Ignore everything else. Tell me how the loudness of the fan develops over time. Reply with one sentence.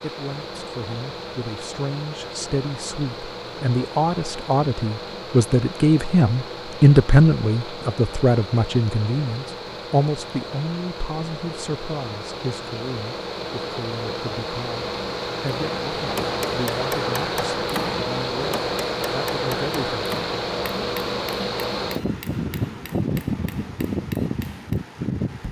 The volume of the fan goes up.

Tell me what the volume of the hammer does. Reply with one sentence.
The volume of the hammer goes down.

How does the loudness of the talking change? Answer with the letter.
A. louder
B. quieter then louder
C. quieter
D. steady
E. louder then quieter
E.